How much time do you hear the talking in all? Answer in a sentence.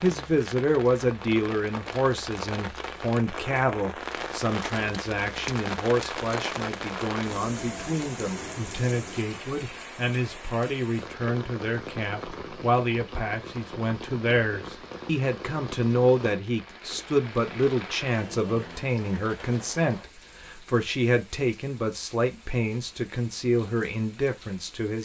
The talking can be heard for 25 seconds in total.